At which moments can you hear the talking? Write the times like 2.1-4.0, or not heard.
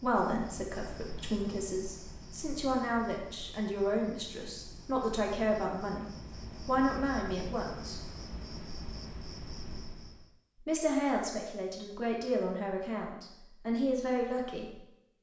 0.0-8.1, 10.6-14.8.